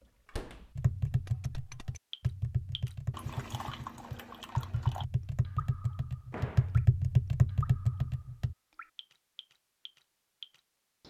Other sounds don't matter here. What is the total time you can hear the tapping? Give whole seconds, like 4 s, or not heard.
8 s.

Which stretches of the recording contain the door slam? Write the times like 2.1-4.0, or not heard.
0.2-0.7, 6.3-6.8.